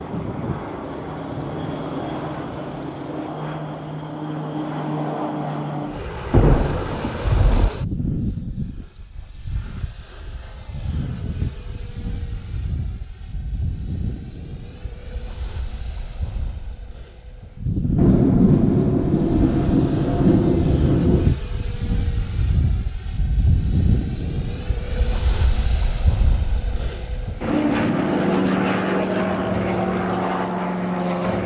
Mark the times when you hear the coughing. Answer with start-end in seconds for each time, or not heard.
not heard.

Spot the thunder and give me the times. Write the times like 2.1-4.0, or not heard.
6.3-7.7, 17.9-21.4.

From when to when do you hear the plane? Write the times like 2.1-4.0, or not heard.
0.0-31.4.